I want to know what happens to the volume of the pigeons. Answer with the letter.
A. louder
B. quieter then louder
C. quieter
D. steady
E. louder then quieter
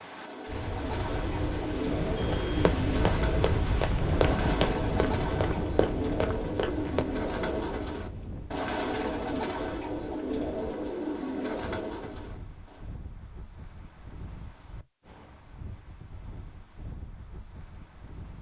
D.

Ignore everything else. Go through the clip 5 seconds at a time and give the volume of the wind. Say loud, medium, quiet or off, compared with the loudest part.
loud, medium, quiet, quiet.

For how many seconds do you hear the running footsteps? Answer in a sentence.
You can hear the running footsteps for 5 seconds altogether.